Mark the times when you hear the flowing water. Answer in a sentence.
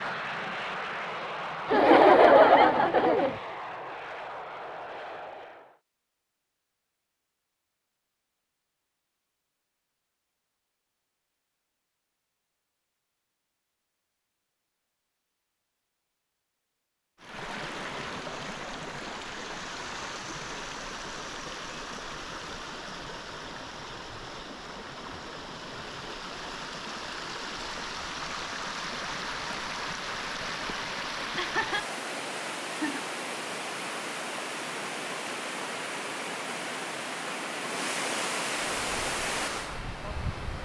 The flowing water can be heard from 17.2 to 40.6 s.